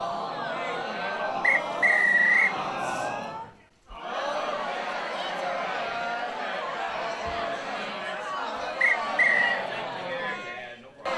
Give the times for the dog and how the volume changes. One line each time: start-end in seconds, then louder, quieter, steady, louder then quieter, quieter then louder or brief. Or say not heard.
not heard.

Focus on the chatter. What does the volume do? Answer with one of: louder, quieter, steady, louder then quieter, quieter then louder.
steady.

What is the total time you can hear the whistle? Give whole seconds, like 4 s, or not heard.
2 s.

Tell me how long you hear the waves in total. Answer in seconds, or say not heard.
not heard.